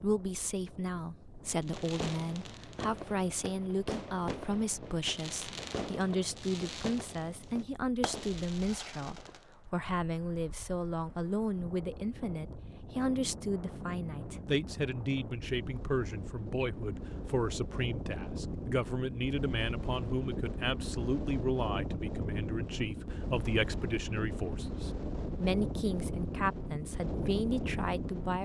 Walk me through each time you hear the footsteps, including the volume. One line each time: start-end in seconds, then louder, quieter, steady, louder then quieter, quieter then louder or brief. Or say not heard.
not heard.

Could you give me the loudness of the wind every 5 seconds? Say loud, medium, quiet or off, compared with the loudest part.
quiet, quiet, medium, loud, loud, loud.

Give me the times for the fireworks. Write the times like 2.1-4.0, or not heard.
1.6-9.6.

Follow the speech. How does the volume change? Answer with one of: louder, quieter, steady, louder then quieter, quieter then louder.
steady.